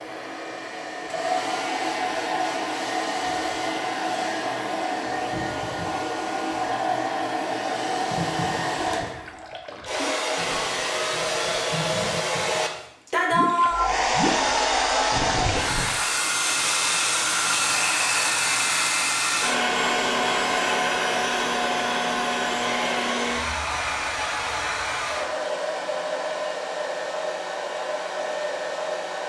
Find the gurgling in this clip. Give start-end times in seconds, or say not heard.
8.1-15.9.